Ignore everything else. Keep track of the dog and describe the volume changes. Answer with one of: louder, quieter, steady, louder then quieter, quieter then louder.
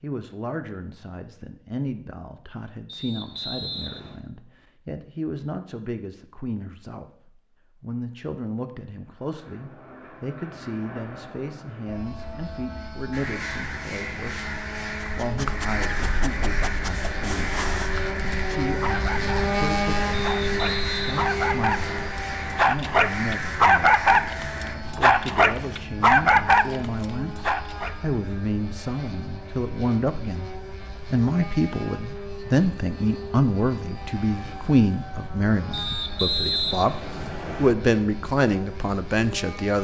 louder.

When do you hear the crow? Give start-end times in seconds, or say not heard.
13.1-24.8.